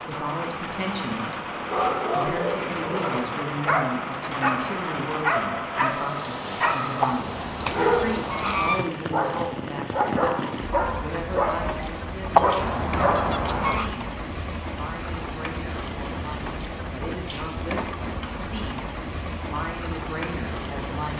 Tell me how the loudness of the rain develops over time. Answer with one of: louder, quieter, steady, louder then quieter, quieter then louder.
steady.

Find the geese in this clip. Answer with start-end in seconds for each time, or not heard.
7.0-8.8, 12.3-13.9.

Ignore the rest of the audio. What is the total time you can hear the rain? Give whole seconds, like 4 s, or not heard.
21 s.